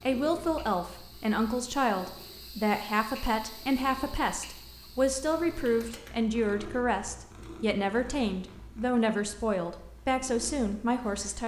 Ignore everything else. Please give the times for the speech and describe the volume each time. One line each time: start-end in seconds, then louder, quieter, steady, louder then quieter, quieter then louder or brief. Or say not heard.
0.1-11.4 steady.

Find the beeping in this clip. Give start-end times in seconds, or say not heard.
not heard.